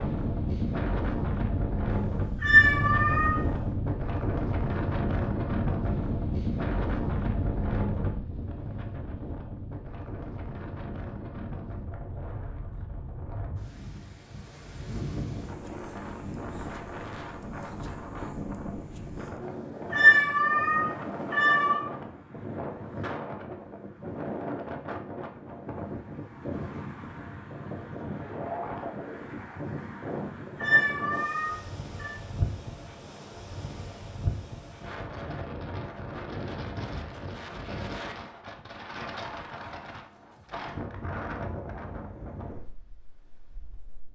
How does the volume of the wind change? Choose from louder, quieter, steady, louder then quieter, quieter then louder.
quieter.